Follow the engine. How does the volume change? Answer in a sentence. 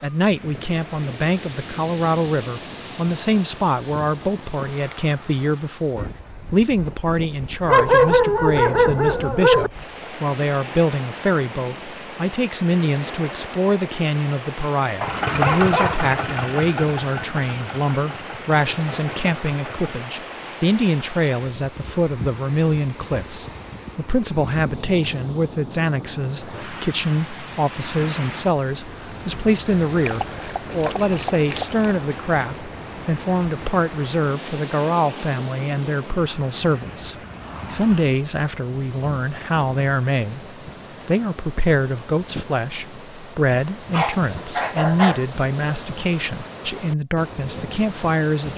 The loudness of the engine goes down.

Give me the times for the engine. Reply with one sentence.
You can hear the engine from 15.0 to 19.9 s.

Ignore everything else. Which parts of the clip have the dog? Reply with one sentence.
You can hear the dog from 7.7 to 9.7 s, from 15.0 to 16.1 s, from 30.1 to 31.9 s and from 43.9 to 45.2 s.